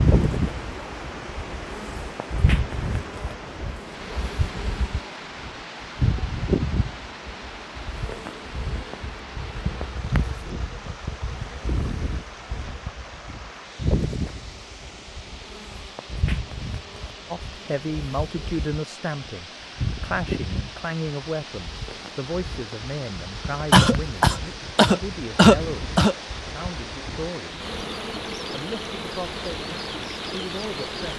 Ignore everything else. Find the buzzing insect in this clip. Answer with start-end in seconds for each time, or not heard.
0.0-31.1.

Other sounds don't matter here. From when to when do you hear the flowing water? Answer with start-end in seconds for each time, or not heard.
0.0-31.1.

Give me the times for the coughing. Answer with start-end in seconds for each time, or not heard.
23.7-26.1.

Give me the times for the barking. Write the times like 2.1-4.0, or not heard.
not heard.